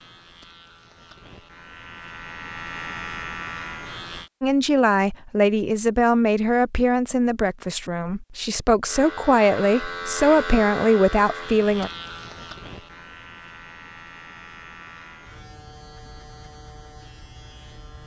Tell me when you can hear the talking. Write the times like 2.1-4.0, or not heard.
4.4-11.9.